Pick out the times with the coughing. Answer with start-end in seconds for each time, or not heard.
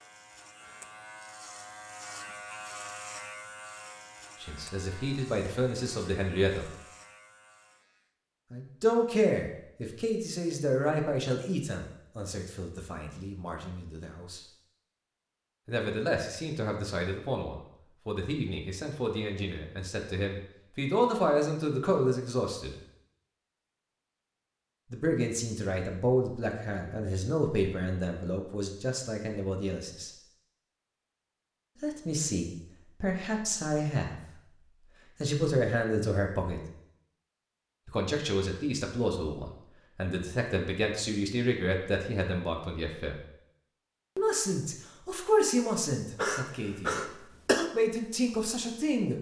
46.1-47.7.